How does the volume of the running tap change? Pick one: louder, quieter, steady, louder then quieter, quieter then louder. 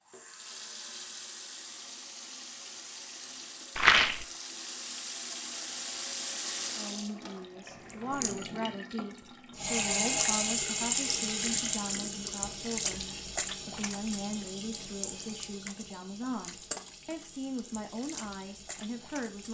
louder then quieter.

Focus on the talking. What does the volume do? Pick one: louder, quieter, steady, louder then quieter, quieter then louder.
steady.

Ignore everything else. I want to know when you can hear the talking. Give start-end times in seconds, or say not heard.
6.8-19.4.